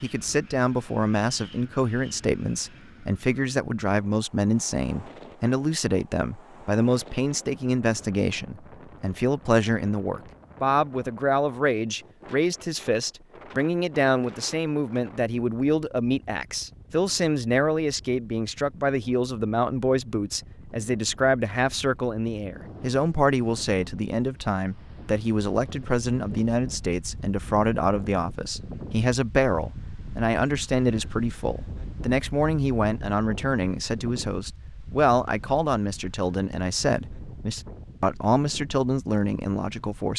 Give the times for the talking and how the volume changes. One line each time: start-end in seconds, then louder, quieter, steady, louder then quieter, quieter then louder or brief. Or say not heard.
0.0-40.1 steady.